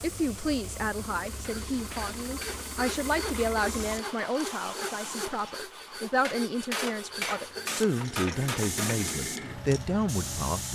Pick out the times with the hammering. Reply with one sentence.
You can hear the hammering from 1.4 to 3.6 s and from 6.2 to 9.2 s.